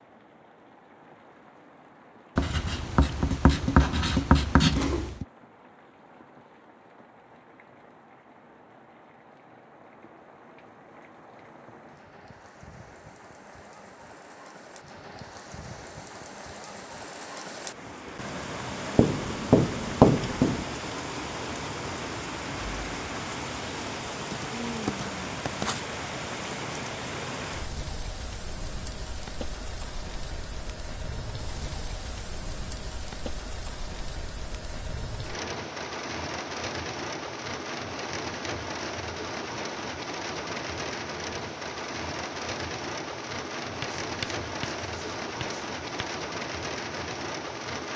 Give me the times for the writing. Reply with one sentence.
The writing can be heard from 2.4 to 5.2 s, from 18.9 to 20.6 s, from 24.1 to 25.8 s and from 43.8 to 46.1 s.